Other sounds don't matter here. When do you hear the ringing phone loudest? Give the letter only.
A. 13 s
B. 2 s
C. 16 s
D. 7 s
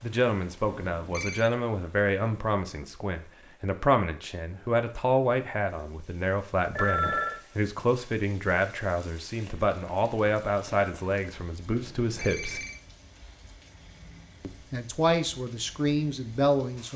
D.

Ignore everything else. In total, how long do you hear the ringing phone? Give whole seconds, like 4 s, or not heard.
3 s.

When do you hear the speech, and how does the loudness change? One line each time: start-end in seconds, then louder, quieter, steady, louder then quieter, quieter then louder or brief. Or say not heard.
0.0-12.6 steady
14.4-16.9 brief.